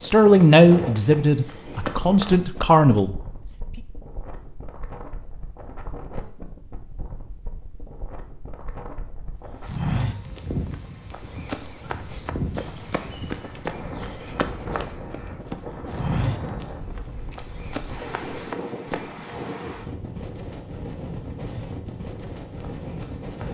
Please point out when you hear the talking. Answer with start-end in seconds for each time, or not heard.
0.0-3.8.